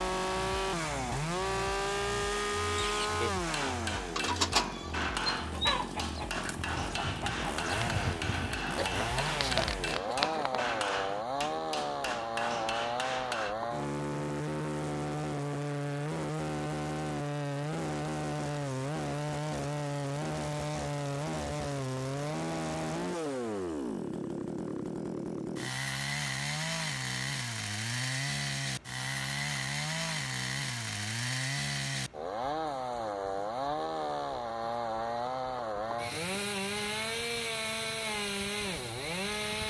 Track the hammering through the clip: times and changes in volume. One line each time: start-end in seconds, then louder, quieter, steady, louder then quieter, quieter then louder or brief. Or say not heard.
3.4-13.6 steady.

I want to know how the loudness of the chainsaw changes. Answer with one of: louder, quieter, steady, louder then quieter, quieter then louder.
steady.